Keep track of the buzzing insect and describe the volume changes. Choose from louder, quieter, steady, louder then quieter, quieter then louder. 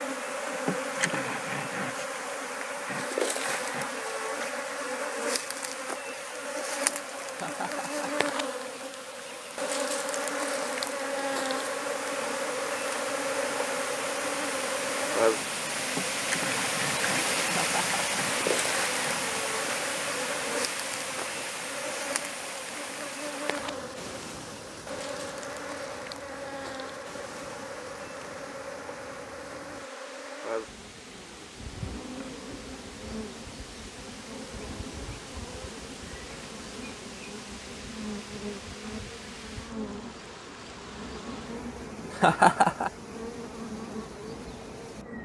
quieter.